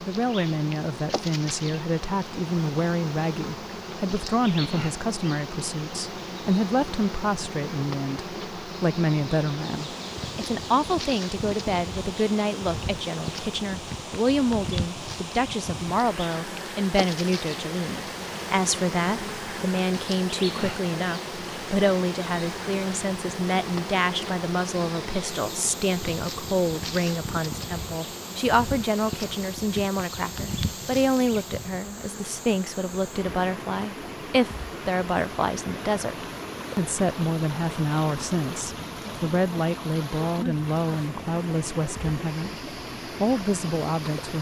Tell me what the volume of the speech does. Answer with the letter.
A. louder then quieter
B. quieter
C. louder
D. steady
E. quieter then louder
D.